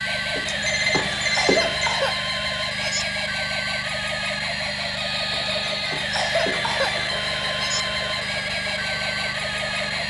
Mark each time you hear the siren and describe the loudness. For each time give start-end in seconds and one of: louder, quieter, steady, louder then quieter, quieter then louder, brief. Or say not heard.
0.0-10.0 steady.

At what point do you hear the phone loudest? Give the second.
1 s.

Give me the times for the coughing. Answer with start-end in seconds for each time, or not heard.
1.3-3.0, 6.1-7.8.